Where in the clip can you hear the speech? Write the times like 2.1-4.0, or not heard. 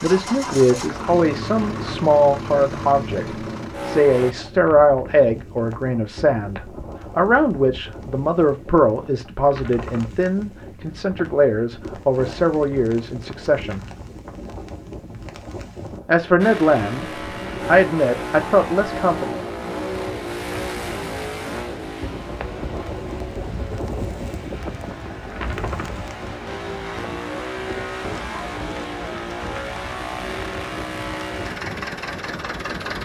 0.0-13.8, 16.1-19.4.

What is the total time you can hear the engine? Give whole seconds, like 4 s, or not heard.
21 s.